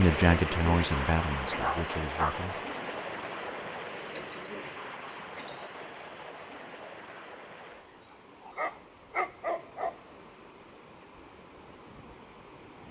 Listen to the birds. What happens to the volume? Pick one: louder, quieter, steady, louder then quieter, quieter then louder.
louder.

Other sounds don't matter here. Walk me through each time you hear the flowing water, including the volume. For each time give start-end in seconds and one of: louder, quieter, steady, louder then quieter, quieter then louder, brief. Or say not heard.
0.0-12.8 quieter.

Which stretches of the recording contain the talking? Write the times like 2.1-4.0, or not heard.
0.0-2.6.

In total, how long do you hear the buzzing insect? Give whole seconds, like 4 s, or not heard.
not heard.